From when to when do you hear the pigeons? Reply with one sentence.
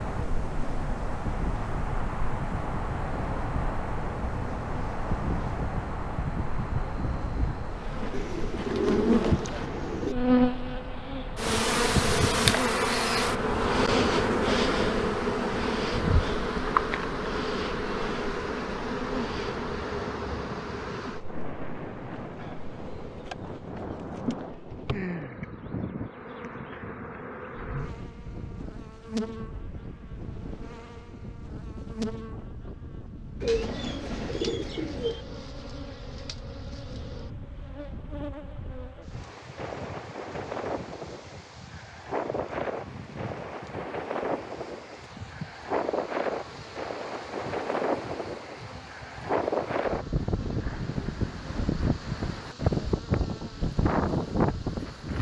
The pigeons can be heard from 8.1 to 10.2 s and from 33.4 to 35.2 s.